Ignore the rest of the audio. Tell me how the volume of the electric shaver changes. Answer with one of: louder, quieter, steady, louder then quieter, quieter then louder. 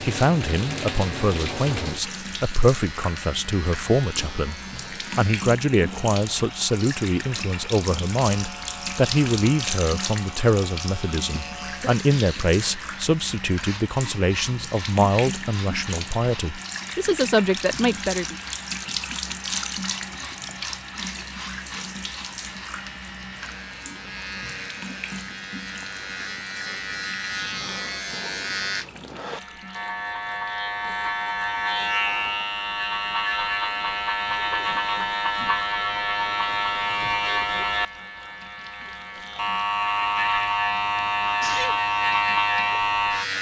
louder.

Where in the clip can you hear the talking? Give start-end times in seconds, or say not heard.
0.0-4.5, 5.2-18.4.